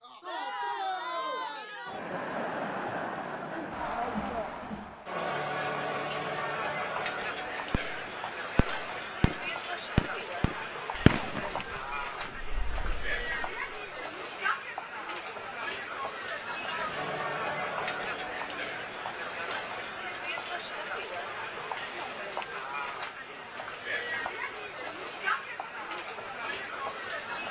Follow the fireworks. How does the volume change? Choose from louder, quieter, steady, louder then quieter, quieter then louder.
louder then quieter.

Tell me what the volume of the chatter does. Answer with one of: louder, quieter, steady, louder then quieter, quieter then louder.
steady.